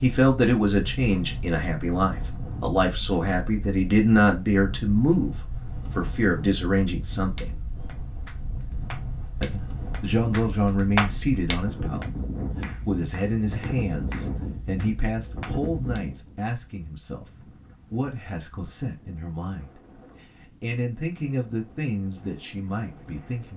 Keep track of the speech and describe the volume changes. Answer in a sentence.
The volume of the speech goes down.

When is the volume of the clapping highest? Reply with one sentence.
The volume of the clapping peaks at 11 seconds.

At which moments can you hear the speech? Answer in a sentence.
The speech can be heard from 0.0 to 7.5 s and from 9.4 to 23.5 s.